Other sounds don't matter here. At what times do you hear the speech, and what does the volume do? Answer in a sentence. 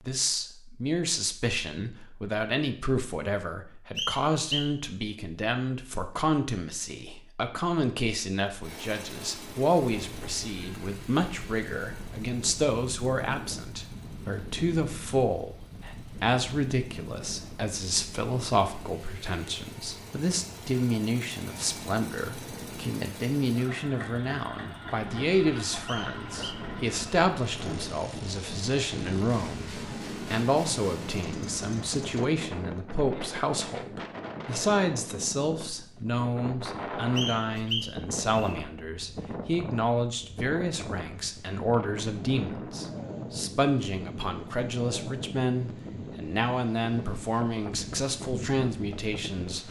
You can hear the speech from 0.1 to 49.6 s, at a steady volume.